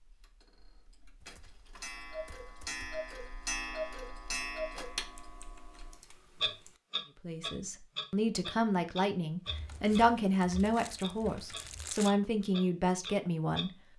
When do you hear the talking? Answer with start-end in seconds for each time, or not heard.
7.2-13.7.